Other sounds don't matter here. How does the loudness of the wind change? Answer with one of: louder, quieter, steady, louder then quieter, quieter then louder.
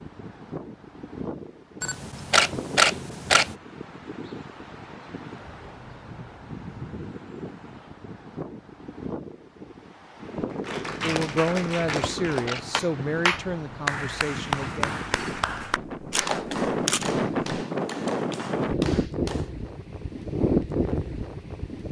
louder.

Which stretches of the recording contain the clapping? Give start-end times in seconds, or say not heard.
10.6-19.5.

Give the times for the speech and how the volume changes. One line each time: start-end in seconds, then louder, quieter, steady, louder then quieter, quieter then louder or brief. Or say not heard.
11.0-15.1 quieter.